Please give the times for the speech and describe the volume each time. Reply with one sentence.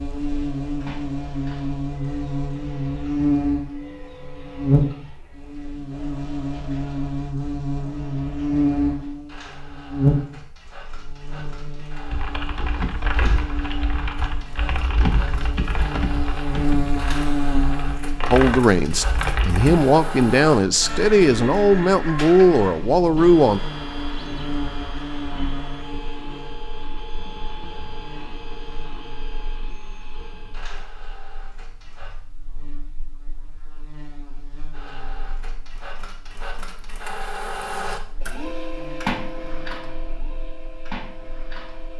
The speech can be heard from 18.3 to 23.6 s, getting louder.